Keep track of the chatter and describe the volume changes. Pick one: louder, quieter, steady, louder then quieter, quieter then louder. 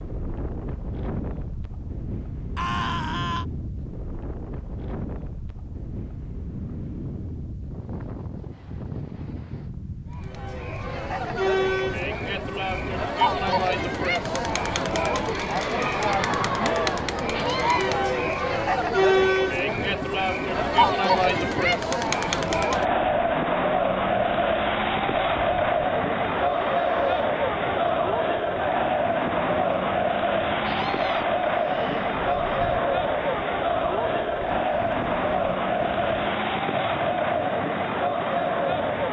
steady.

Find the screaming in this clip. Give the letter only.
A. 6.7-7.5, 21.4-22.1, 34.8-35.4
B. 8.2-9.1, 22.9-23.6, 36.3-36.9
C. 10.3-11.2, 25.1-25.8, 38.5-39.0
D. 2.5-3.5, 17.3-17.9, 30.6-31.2
D.